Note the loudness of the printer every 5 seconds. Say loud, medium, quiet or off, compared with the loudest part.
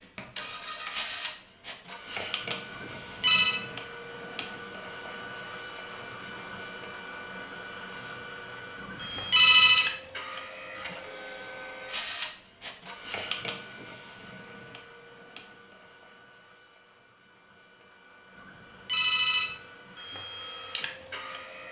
loud, loud, loud, quiet, loud.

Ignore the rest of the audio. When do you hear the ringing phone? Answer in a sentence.
The ringing phone can be heard from 2.7 to 3.6 s, from 8.8 to 9.9 s and from 18.4 to 19.6 s.